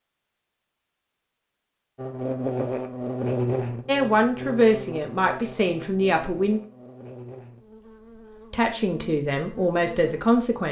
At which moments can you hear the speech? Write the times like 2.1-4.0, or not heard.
3.9-6.6, 8.5-10.6.